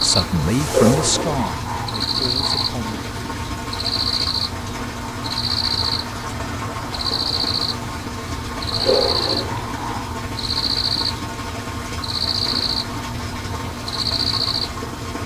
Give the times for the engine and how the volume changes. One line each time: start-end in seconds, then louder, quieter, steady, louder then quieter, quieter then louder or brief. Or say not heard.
0.0-15.2 steady.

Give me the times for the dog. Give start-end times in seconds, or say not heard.
0.7-2.8, 8.8-10.2.